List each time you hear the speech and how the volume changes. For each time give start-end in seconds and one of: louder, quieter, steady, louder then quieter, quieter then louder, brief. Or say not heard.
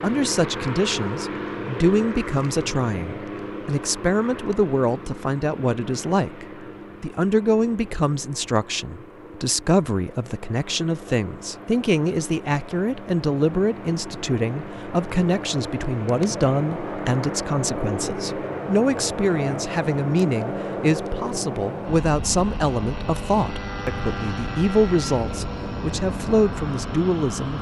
0.0-27.5 steady.